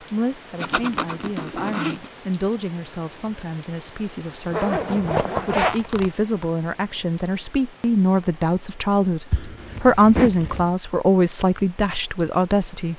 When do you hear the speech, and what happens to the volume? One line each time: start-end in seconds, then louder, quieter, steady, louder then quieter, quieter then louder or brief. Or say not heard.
0.0-12.9 louder.